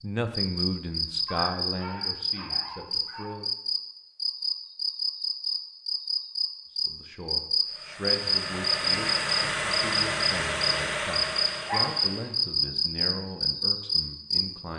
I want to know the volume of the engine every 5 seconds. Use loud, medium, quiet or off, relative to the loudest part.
off, loud, loud.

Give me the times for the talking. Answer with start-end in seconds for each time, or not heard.
0.0-3.5, 6.8-14.7.